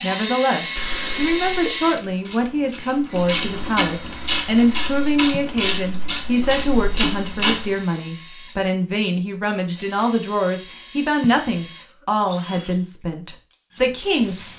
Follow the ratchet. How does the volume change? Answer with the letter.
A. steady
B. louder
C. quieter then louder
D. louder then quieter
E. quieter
B.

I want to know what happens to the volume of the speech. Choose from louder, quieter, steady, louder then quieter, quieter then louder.
steady.